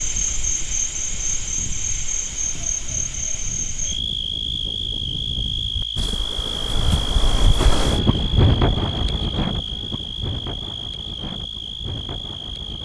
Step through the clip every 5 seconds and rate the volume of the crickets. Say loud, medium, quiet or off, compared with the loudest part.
loud, loud, medium.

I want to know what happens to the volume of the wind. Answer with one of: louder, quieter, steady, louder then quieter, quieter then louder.
louder then quieter.